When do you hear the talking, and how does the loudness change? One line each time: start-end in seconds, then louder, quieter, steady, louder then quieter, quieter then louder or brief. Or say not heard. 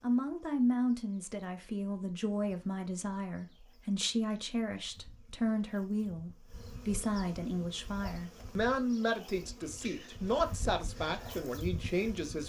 0.0-12.4 steady.